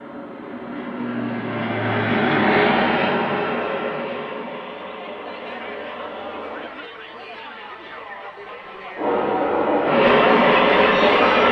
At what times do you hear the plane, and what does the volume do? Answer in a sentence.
The plane can be heard from 0.0 to 6.8 s, getting louder then quieter; and briefly from 8.9 to 11.4 s.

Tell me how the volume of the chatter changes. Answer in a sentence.
The loudness of the chatter goes up.